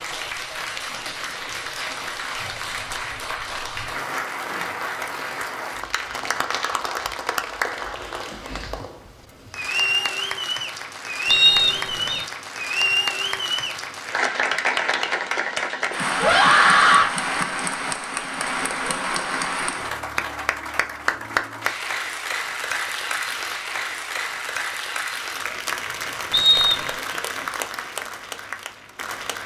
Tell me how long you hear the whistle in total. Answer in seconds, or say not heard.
2 s.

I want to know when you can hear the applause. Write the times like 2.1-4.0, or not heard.
0.0-29.4.